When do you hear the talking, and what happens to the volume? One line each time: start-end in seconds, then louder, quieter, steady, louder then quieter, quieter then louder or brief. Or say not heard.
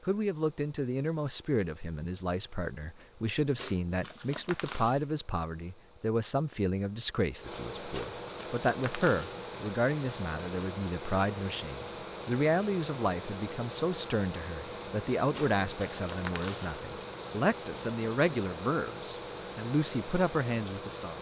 0.0-21.1 steady.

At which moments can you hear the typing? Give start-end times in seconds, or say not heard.
not heard.